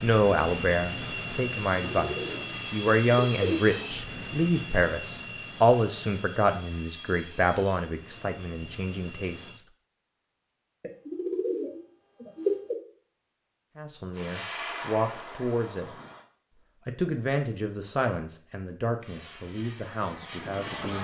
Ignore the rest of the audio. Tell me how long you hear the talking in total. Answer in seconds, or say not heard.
16 s.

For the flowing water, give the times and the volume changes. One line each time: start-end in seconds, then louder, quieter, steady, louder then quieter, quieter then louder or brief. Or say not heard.
not heard.